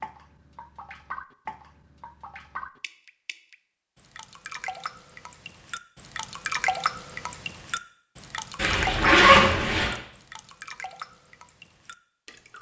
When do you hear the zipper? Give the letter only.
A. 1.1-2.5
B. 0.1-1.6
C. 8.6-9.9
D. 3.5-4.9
C.